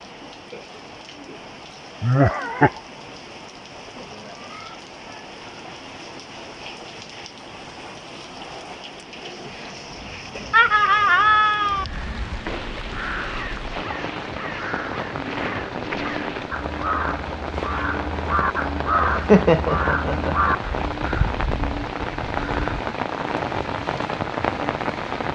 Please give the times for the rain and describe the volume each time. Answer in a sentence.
You can hear the rain from 0.0 to 25.2 s, getting louder.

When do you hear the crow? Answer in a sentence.
The crow can be heard from 11.7 to 22.6 s.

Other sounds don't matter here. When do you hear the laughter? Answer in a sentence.
You can hear the laughter from 2.0 to 2.8 s, from 10.5 to 11.8 s and from 18.6 to 20.5 s.